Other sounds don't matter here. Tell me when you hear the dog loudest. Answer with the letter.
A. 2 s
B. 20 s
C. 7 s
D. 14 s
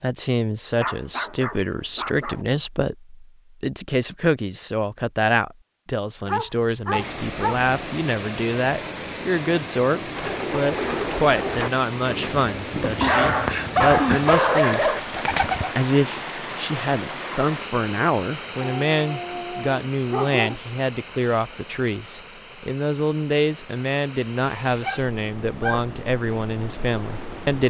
D.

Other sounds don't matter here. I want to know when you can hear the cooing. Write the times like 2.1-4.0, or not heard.
10.2-15.8.